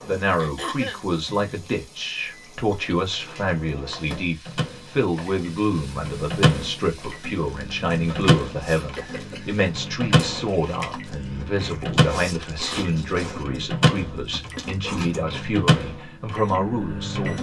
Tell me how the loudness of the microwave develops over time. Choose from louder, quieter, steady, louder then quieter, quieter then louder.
louder.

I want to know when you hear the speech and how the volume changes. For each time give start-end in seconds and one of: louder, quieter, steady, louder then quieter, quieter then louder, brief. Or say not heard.
0.1-17.3 steady.